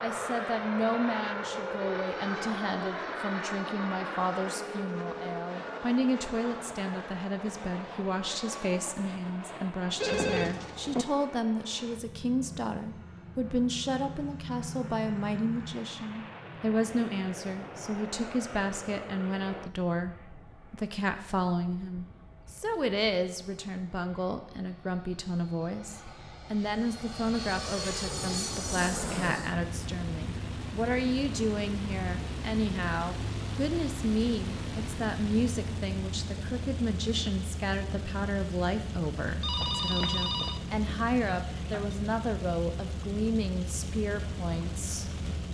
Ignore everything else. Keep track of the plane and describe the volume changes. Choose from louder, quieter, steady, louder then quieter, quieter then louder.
quieter then louder.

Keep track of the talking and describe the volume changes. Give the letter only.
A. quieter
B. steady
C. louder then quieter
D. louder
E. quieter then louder
B.